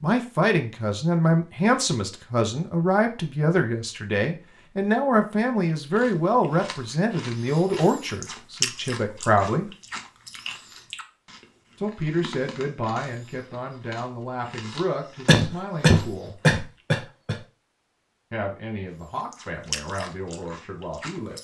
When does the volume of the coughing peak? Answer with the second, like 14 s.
16 s.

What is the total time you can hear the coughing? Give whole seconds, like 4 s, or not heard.
2 s.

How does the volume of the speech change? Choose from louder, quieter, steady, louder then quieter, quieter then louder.
quieter.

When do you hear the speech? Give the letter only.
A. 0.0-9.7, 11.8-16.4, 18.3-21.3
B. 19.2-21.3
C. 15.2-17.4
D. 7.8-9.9
A.